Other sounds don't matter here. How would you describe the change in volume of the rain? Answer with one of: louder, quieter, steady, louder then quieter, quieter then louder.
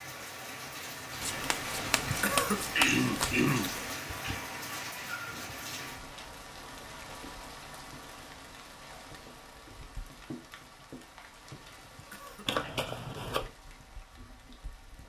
quieter.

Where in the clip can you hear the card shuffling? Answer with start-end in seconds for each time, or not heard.
1.2-4.0, 12.4-13.5.